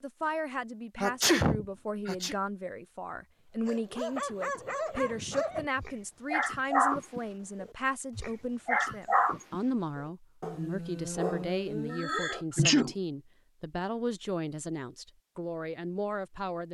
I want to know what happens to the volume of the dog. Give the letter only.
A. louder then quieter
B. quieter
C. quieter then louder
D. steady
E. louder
A.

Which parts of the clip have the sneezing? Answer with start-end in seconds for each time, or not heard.
0.9-2.4, 11.9-12.9.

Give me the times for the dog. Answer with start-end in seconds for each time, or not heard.
3.6-12.6.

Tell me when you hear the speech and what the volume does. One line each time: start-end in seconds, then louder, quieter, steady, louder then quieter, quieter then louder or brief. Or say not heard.
0.0-16.7 steady.